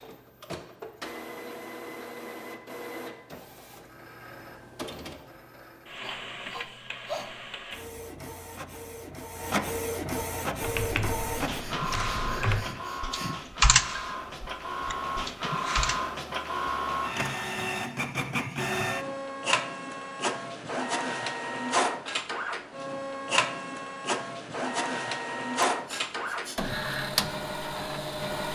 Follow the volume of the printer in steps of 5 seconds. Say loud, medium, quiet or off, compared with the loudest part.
medium, medium, loud, loud, loud, loud.